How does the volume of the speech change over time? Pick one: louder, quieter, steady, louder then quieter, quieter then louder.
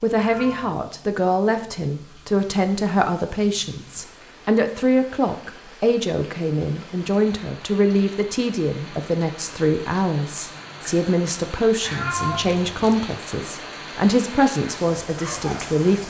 steady.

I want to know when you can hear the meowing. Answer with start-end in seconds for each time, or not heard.
0.1-0.8, 11.8-12.8.